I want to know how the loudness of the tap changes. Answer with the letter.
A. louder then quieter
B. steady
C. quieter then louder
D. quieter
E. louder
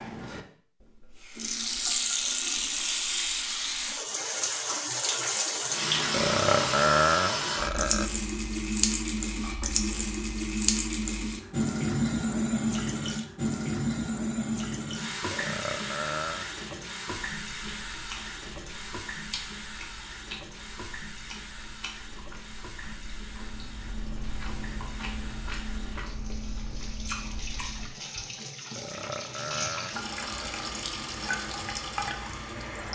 C.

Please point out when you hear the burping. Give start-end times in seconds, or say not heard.
6.1-8.1, 15.3-16.5, 28.8-30.8.